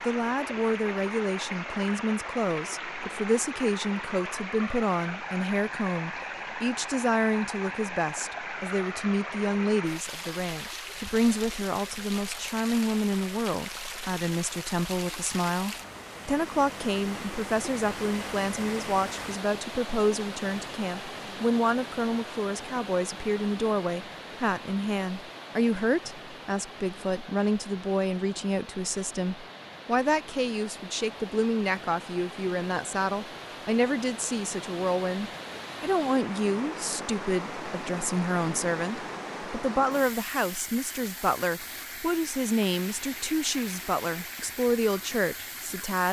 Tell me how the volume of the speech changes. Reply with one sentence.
The loudness of the speech stays about the same.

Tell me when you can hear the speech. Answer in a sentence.
The speech can be heard from 0.0 to 46.0 s.